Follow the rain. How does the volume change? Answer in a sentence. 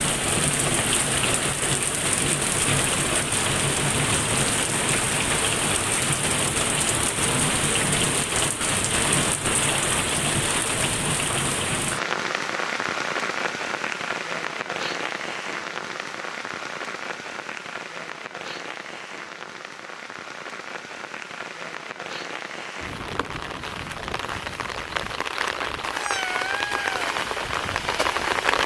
The loudness of the rain goes down, then up.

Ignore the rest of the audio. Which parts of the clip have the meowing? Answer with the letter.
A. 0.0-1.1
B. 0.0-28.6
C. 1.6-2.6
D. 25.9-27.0
D.